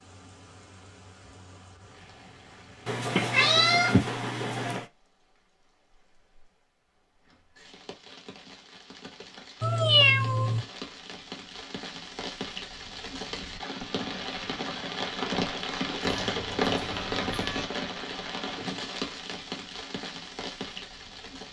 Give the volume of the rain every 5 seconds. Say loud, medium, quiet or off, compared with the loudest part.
quiet, quiet, medium, loud, medium.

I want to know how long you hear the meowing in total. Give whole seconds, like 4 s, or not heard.
5 s.